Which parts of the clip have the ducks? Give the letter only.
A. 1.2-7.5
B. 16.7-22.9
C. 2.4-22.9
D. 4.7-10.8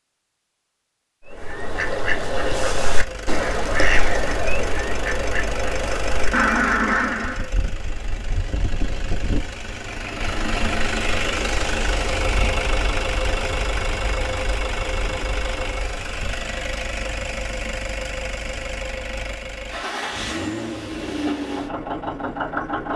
A.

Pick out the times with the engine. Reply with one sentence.
You can hear the engine from 2.4 to 22.9 s.